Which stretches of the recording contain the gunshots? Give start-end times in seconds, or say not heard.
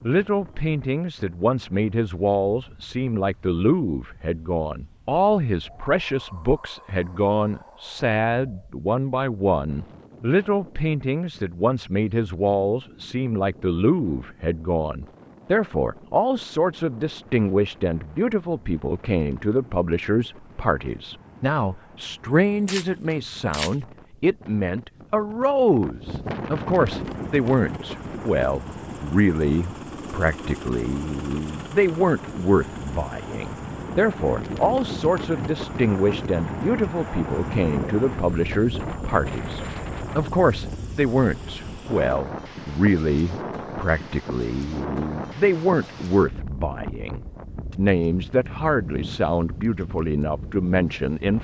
22.2-23.8.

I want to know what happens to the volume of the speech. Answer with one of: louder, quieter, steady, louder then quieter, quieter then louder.
steady.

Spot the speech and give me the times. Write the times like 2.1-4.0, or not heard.
0.0-51.3.